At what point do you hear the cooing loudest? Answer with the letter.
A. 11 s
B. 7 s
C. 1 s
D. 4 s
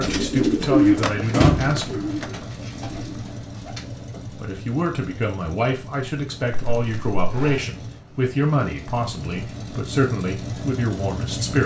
C.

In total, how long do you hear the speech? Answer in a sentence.
You can hear the speech for 9 seconds altogether.